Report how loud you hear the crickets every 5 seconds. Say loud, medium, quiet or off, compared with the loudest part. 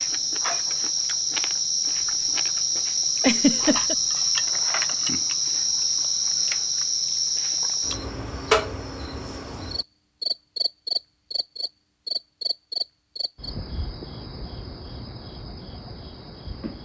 loud, loud, medium, quiet.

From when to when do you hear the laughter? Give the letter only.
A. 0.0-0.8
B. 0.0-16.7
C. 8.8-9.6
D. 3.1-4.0
D.